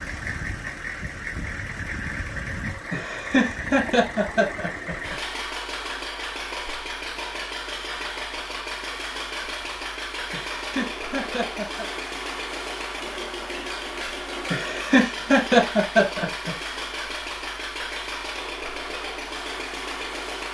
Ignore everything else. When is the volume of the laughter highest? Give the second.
15 s.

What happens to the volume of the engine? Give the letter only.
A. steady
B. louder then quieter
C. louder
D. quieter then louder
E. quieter
A.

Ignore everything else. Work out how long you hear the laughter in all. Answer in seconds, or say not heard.
6 s.